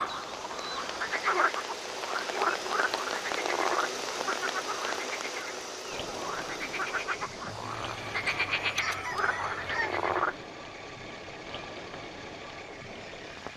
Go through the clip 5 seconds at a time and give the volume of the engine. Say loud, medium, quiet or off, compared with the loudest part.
loud, loud, medium.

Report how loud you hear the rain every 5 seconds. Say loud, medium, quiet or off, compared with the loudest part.
loud, medium, medium.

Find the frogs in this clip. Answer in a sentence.
You can hear the frogs from 0.0 to 10.4 s.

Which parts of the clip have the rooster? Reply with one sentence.
You can hear the rooster from 7.7 to 10.1 s.